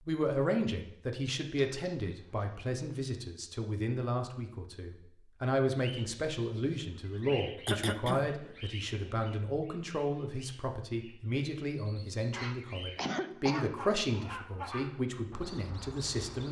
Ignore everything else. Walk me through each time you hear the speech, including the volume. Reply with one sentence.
The speech can be heard from 0.1 to 16.4 s, at a steady volume.